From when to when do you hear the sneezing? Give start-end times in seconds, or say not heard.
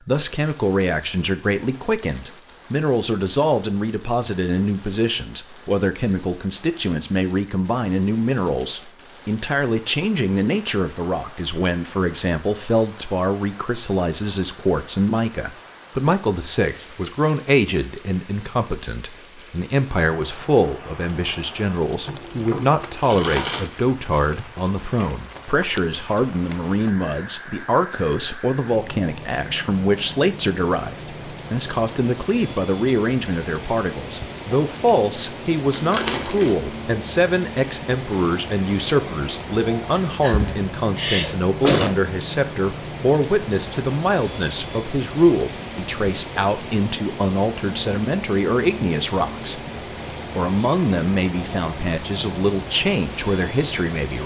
40.0-42.0.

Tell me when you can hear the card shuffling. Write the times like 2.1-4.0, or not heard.
22.1-23.6, 35.7-36.5.